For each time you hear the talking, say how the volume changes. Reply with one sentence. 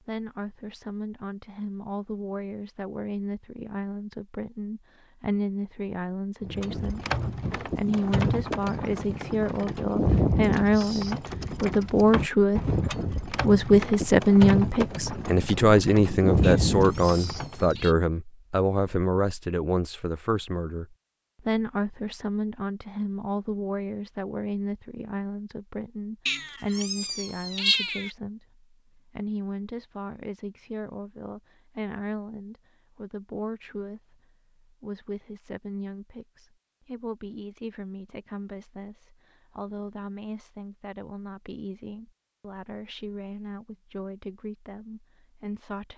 You can hear the talking from 0.1 to 45.9 s, getting louder then quieter.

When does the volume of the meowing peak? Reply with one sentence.
The volume of the meowing peaks at 28 seconds.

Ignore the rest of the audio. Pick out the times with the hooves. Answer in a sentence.
You can hear the hooves from 6.4 to 17.8 s.